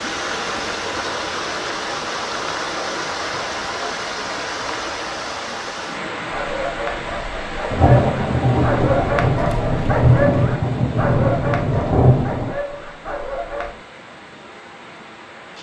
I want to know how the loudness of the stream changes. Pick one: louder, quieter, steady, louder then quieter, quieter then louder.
quieter.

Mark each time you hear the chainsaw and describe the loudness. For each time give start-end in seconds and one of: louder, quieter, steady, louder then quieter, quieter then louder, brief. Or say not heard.
not heard.